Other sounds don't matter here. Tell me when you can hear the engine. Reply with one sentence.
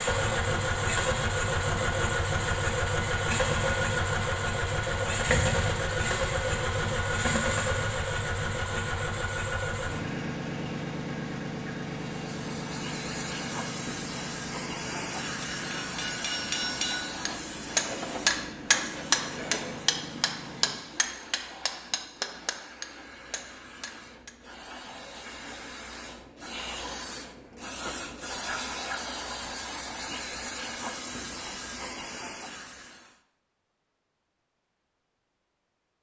The engine can be heard from 0.0 to 20.8 s.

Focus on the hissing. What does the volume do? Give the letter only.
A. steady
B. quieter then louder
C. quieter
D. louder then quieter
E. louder
B.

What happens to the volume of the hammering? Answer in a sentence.
The loudness of the hammering goes up, then down.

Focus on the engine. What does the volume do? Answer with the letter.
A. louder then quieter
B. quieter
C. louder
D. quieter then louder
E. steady
B.